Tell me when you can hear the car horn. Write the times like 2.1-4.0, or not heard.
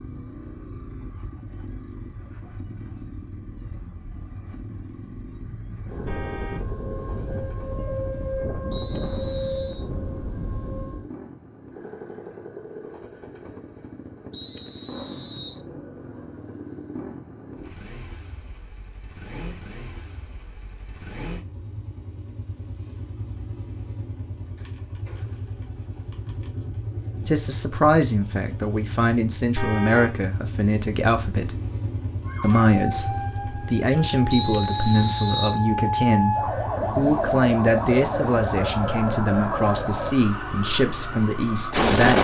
6.0-6.7, 29.6-30.2.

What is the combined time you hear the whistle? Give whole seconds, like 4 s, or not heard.
4 s.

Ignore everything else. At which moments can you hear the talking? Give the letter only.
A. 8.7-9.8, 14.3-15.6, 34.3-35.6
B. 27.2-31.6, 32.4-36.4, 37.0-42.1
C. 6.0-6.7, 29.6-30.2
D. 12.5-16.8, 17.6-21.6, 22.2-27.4
B.